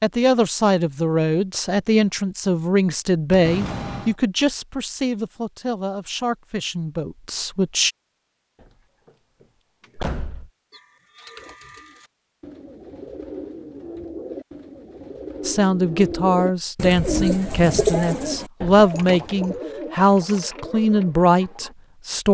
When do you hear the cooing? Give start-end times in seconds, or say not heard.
10.7-21.8.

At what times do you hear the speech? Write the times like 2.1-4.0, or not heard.
0.0-7.9, 15.4-22.3.